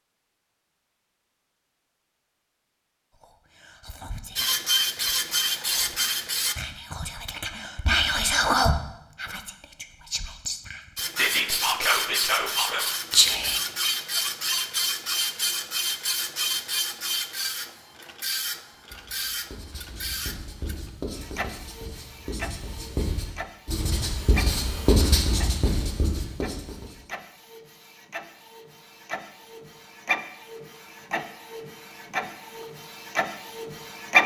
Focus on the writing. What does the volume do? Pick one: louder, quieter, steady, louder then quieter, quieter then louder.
louder.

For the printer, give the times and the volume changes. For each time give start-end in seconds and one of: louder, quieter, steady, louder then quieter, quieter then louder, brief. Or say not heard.
4.3-6.5 brief
10.9-34.2 quieter then louder.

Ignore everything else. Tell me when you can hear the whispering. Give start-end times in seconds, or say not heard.
3.2-13.6.